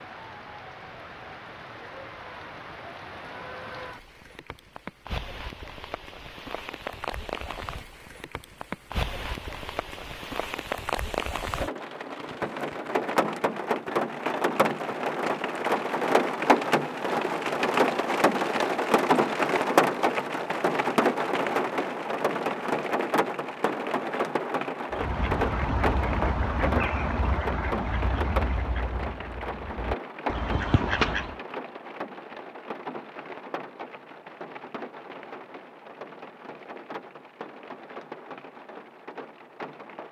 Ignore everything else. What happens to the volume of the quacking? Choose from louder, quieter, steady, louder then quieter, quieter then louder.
quieter then louder.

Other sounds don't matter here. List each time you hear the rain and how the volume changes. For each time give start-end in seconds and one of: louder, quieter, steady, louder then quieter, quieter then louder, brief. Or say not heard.
0.0-40.0 louder then quieter.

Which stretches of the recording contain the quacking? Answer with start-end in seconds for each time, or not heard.
24.9-31.4.